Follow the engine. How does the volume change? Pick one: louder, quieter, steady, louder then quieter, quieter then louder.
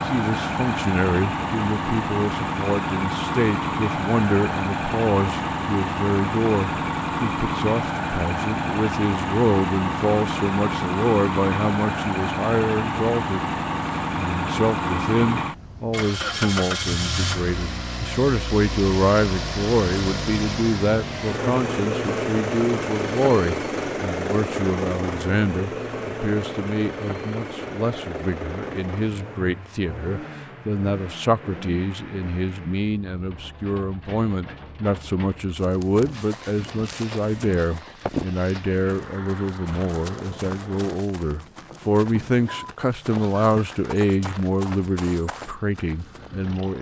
quieter.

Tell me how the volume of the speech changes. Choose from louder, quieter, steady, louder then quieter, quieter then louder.
steady.